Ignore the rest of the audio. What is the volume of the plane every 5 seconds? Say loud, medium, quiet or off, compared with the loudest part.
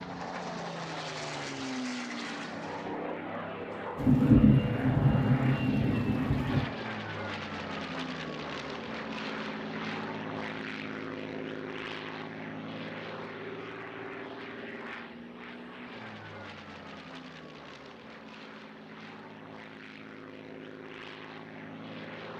loud, loud, loud, medium, medium.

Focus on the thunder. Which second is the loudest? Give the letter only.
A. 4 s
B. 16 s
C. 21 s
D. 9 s
A.